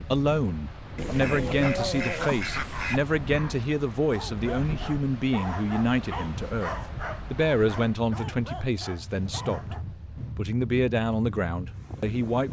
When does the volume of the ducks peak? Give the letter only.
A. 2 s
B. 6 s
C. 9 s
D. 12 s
A.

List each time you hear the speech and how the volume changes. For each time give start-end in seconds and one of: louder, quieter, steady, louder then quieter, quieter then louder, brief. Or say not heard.
0.1-12.4 steady.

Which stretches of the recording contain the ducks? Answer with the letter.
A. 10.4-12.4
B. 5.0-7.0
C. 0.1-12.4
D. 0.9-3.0
D.